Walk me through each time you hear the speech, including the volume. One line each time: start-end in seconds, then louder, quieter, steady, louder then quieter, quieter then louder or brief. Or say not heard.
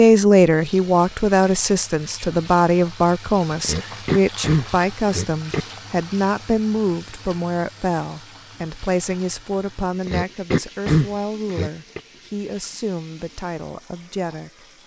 0.0-14.7 quieter.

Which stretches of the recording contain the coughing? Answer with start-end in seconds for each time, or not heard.
3.6-5.7, 10.1-12.0.